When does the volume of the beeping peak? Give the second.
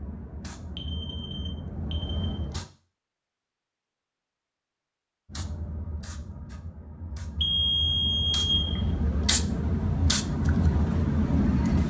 8 s.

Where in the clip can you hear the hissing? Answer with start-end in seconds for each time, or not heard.
0.0-2.7, 5.3-11.8.